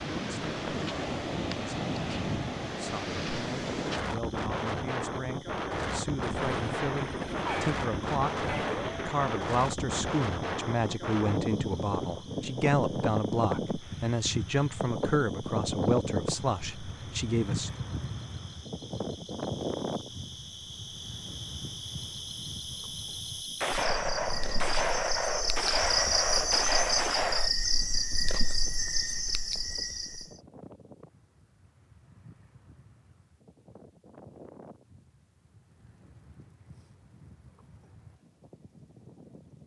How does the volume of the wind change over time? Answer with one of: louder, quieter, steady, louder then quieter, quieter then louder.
quieter.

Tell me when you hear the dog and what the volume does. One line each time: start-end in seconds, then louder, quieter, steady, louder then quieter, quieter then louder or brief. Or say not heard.
not heard.